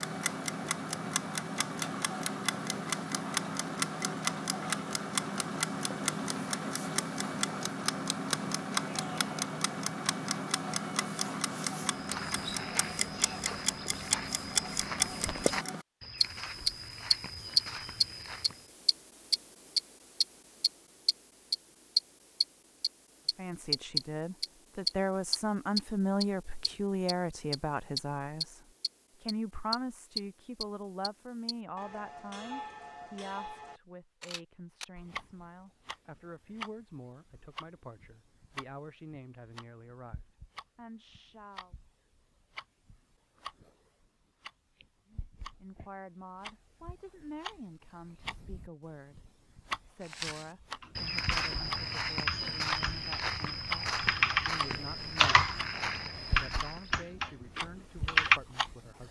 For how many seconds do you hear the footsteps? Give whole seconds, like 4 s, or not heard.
14 s.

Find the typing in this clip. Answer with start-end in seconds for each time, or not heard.
50.8-58.4.